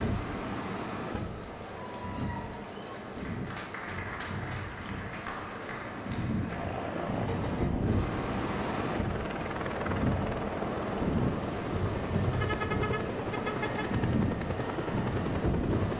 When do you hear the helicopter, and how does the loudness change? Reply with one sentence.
You can hear the helicopter from 6.5 to 15.9 s, at a steady volume.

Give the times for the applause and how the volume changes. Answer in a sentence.
You can hear the applause from 0.0 to 6.5 s, getting louder.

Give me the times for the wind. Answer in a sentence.
You can hear the wind from 0.0 to 15.9 s.